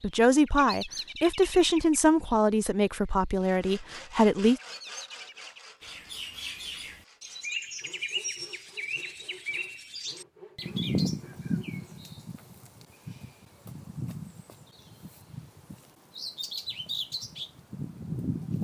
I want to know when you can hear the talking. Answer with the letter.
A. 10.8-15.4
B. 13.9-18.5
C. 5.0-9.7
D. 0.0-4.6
D.